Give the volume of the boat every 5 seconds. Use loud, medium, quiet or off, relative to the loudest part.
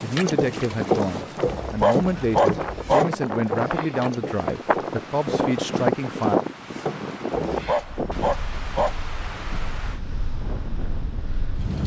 loud, medium, medium.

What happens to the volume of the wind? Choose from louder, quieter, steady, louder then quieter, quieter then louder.
louder then quieter.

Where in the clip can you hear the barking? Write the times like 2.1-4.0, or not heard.
1.6-3.0, 7.5-8.9.